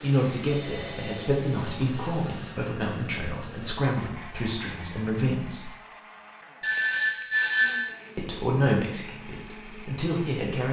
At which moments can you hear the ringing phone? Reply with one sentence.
The ringing phone can be heard from 0.5 to 1.8 s and from 6.6 to 8.0 s.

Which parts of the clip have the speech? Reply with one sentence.
The speech can be heard from 0.0 to 5.7 s and from 8.2 to 10.6 s.